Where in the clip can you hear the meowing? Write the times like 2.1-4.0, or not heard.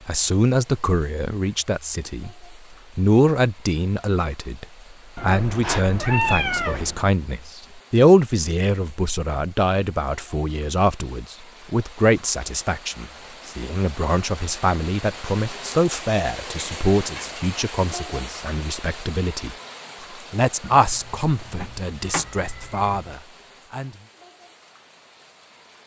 5.2-7.0, 20.6-23.1.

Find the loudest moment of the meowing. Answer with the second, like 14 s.
6 s.